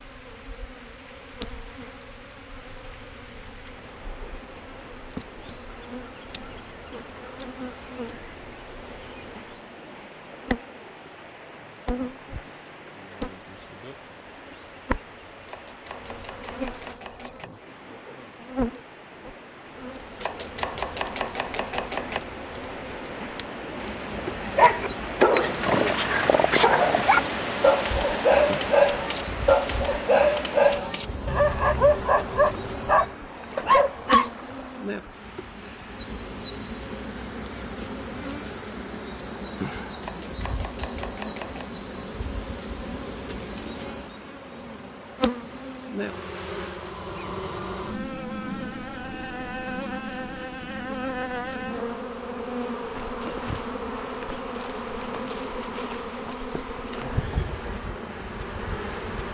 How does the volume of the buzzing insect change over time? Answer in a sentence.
The loudness of the buzzing insect goes up.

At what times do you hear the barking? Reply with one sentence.
You can hear the barking from 24.4 to 34.3 s.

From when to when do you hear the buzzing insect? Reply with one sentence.
The buzzing insect can be heard from 0.0 to 59.2 s.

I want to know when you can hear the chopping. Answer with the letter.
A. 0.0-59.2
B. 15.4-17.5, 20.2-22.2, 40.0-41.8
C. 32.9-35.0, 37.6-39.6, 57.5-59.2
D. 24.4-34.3
B.